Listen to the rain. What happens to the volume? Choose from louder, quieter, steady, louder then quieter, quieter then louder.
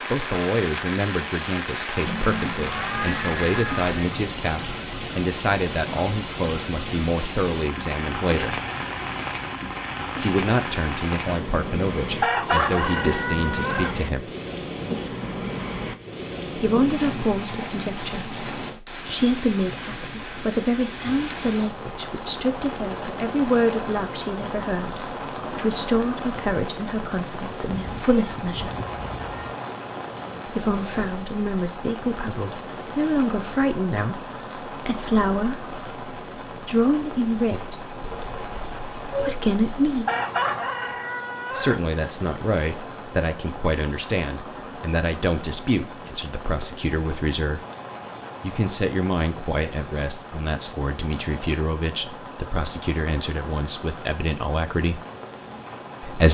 quieter.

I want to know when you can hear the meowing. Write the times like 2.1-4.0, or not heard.
2.0-4.0, 27.6-29.6, 38.0-39.4.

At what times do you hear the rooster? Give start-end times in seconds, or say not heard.
12.2-13.9, 40.0-41.8.